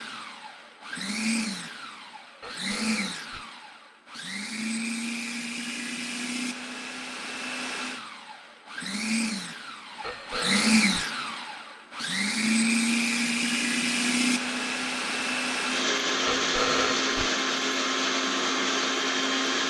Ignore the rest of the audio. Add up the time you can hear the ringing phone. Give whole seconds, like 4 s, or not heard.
3 s.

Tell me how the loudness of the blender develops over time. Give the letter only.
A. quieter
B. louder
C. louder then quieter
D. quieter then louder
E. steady
B.